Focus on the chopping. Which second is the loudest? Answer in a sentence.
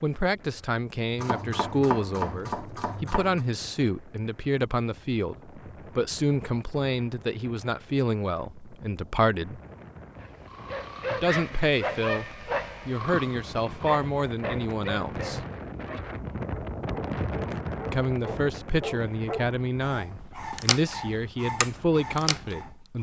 The loudest moment of the chopping is at 2 seconds.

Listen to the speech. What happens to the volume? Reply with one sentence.
The volume of the speech stays about the same.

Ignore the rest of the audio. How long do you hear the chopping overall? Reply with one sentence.
The chopping can be heard for 2 seconds in total.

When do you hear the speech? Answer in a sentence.
You can hear the speech from 0.0 to 9.6 s, from 11.1 to 15.4 s and from 17.9 to 22.9 s.